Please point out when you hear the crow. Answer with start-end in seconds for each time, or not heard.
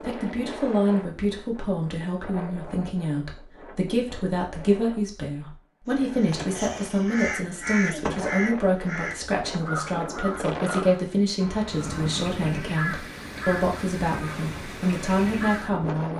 6.2-15.8.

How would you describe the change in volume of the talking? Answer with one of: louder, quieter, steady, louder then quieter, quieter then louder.
steady.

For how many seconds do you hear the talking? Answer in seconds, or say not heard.
16 s.